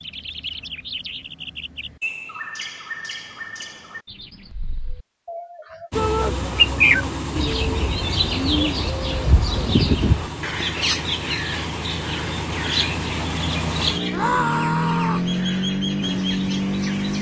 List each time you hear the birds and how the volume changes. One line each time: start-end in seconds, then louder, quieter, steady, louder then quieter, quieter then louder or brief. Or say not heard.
0.0-17.1 louder then quieter.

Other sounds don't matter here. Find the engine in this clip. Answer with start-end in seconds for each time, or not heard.
5.9-17.1.